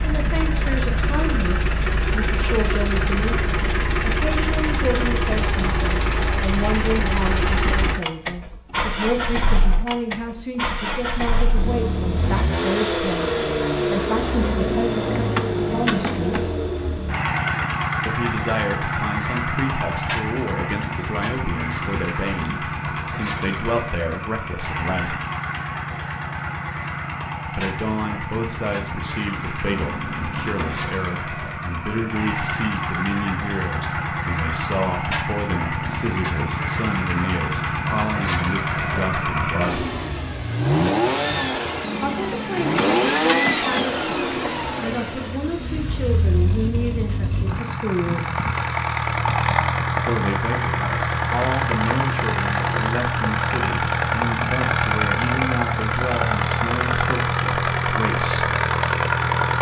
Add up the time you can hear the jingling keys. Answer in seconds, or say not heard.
5 s.